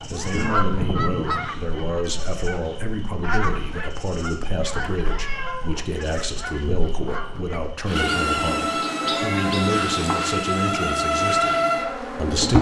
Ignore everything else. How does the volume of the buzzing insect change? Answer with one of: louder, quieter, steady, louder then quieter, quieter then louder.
louder.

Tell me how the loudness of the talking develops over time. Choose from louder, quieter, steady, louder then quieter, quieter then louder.
steady.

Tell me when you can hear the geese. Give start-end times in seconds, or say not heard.
0.0-7.8.